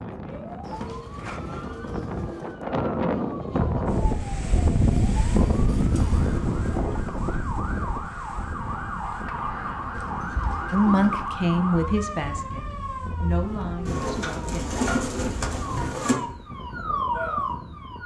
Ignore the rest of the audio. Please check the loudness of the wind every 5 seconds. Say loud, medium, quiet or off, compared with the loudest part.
loud, loud, quiet, quiet.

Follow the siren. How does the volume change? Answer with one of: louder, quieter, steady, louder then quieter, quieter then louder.
louder.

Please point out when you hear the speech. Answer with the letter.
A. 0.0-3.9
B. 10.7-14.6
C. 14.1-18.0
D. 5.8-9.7
B.